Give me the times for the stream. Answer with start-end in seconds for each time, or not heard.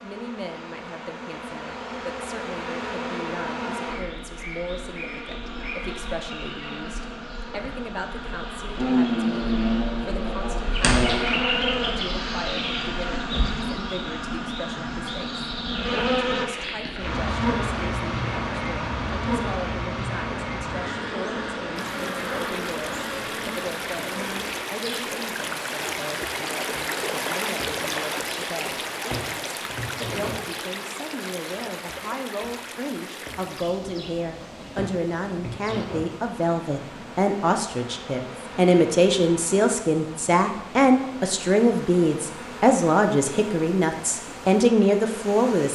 21.8-45.6.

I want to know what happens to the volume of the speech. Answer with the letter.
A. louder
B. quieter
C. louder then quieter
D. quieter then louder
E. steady
A.